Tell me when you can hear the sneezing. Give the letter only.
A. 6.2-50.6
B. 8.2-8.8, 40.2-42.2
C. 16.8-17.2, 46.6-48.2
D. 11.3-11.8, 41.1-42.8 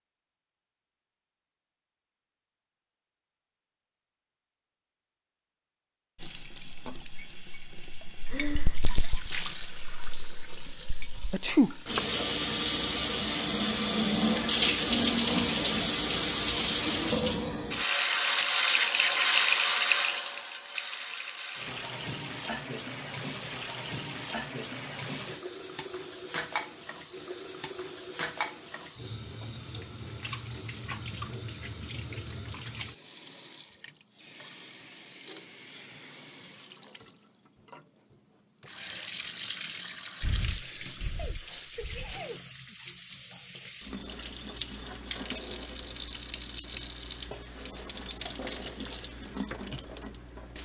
D.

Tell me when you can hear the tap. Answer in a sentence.
You can hear the tap from 6.2 to 50.6 s.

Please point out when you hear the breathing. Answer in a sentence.
You can hear the breathing from 8.2 to 8.8 s and from 40.2 to 42.2 s.